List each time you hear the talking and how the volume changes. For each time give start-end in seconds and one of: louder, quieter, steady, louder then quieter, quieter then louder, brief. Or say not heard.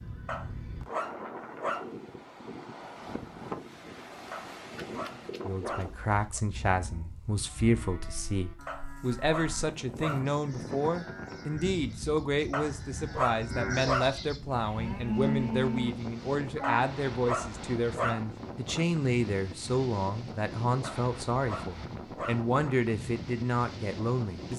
5.5-24.5 steady.